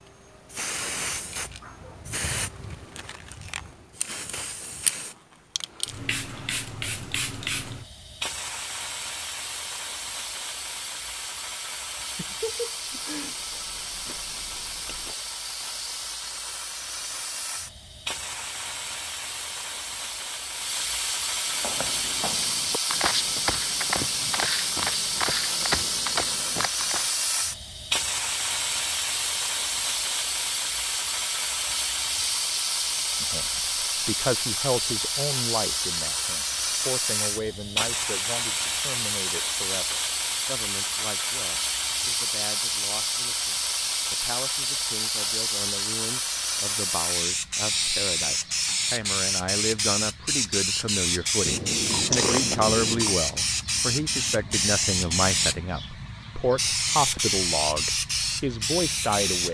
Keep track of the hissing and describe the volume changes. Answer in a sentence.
The volume of the hissing goes up.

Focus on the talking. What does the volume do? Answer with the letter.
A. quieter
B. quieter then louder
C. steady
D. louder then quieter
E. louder
B.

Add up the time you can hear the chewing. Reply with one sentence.
You can hear the chewing for 5 seconds altogether.